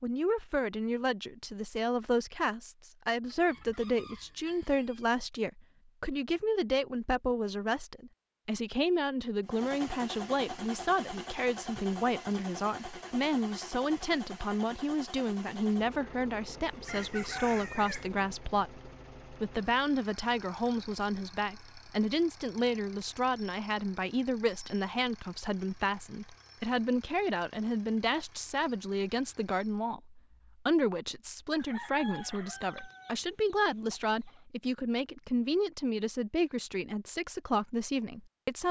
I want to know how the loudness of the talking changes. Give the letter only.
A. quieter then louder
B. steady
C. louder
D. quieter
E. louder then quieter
B.